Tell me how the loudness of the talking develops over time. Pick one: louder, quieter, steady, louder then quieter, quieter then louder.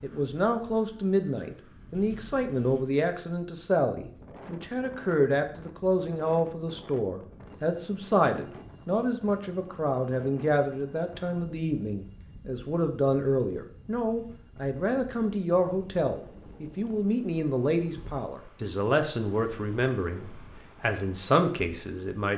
steady.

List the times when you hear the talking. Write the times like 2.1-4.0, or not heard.
0.0-22.3.